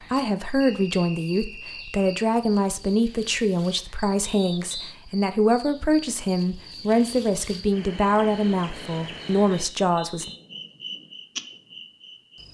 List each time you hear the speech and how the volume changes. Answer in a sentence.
The speech can be heard from 0.1 to 10.3 s, at a steady volume.